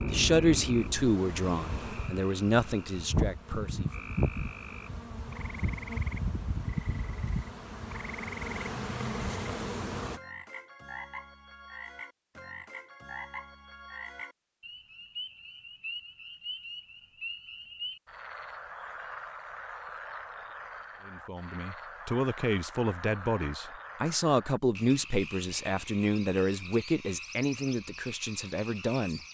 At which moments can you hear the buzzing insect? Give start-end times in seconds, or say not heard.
0.0-10.2.